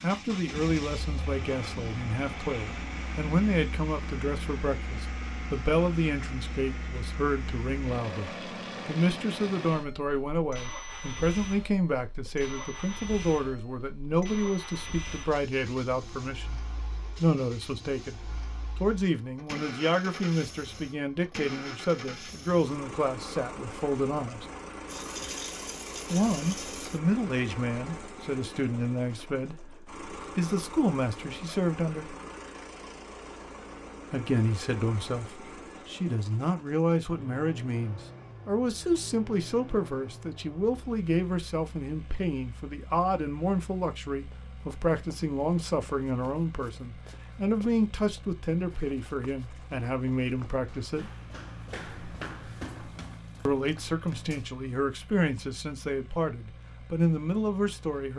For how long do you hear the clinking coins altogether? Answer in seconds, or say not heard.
2 s.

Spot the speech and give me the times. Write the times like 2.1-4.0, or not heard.
0.0-24.4, 26.1-32.1, 34.1-51.1, 53.5-58.1.